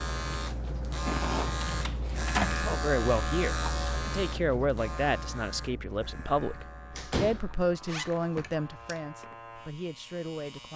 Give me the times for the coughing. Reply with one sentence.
You can't hear the coughing here.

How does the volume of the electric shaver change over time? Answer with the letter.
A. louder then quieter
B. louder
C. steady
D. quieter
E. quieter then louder
D.